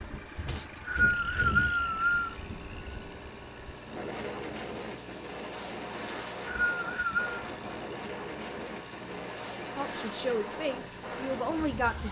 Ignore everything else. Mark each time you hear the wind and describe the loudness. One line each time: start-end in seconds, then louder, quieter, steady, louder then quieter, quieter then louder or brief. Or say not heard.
0.0-12.0 steady.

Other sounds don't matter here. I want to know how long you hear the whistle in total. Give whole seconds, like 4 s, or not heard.
3 s.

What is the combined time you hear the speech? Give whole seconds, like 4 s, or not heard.
2 s.